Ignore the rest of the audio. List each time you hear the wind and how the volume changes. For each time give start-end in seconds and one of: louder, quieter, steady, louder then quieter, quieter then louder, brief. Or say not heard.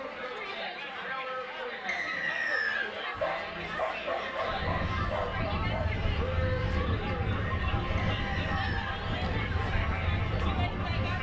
4.4-11.1 steady.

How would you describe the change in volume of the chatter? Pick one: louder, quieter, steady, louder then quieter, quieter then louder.
steady.